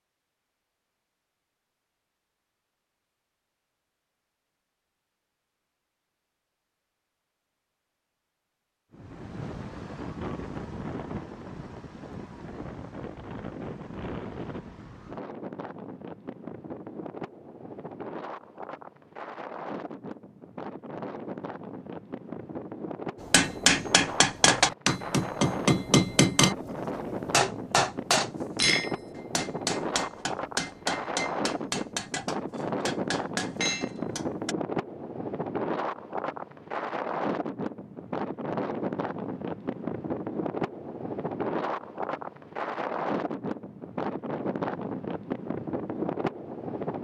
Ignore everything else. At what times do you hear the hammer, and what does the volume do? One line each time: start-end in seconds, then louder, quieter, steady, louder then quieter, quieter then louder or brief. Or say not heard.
23.2-34.5 quieter.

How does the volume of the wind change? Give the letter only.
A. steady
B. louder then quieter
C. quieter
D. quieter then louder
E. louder
E.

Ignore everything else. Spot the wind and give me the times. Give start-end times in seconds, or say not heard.
8.9-46.9.